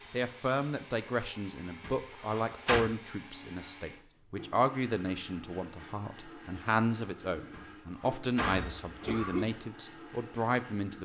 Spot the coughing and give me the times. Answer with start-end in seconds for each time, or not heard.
8.4-9.4.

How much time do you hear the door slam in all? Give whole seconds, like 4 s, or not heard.
3 s.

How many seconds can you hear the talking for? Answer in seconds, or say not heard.
11 s.